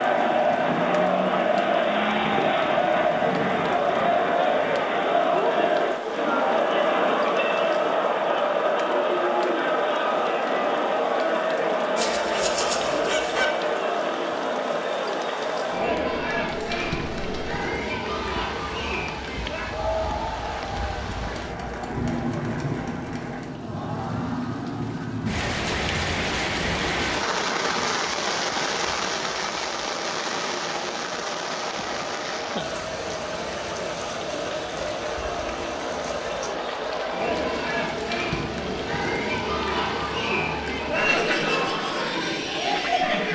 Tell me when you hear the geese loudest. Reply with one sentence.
The volume of the geese peaks at 13 seconds.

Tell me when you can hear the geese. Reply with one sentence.
The geese can be heard from 11.9 to 13.4 s.